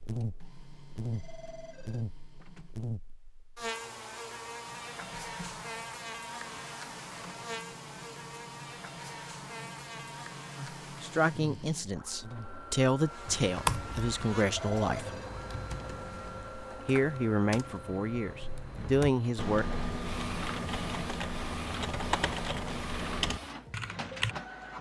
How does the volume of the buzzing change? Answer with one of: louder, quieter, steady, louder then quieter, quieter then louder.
quieter.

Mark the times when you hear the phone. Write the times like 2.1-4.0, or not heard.
1.1-2.0, 14.4-15.3.